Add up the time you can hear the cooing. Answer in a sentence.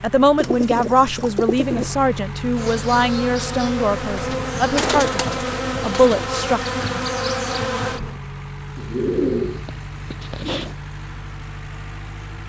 The cooing can be heard for 6 seconds in total.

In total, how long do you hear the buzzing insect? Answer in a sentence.
You can hear the buzzing insect for 6 seconds altogether.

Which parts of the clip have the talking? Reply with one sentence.
The talking can be heard from 0.0 to 6.6 s.